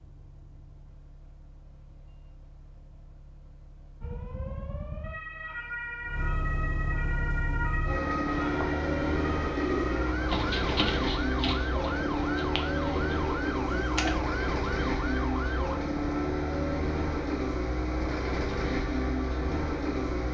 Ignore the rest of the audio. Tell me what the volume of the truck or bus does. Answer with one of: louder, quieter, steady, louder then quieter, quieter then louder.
louder.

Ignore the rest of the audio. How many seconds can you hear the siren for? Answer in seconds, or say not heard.
12 s.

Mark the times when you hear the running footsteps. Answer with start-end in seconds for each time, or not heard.
not heard.